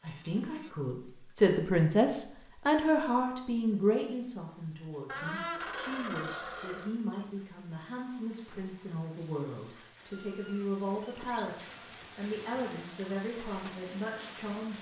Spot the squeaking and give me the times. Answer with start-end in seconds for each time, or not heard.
0.1-0.8, 5.0-7.0, 10.1-11.7.